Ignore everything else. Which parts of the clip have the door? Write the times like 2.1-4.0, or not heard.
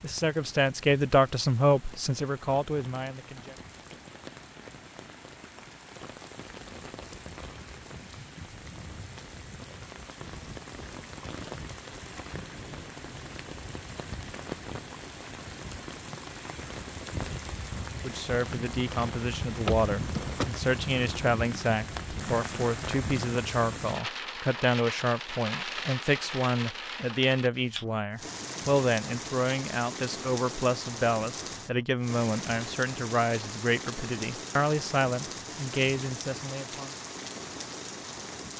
19.6-20.4.